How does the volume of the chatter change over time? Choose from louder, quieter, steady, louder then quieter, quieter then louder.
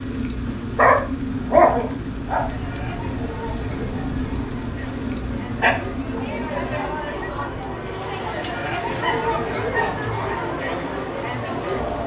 louder.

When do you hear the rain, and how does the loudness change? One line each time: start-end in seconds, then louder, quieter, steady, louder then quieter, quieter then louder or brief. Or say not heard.
0.0-12.0 quieter.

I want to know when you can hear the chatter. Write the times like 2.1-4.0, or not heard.
2.4-12.0.